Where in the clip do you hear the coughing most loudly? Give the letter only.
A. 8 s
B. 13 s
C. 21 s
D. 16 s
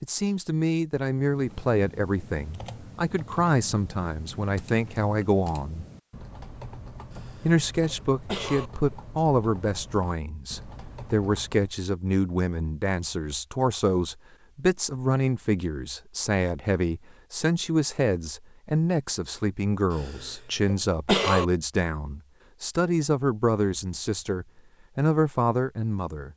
C.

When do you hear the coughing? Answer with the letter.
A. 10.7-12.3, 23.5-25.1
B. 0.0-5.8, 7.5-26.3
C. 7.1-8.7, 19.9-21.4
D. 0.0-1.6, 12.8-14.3
C.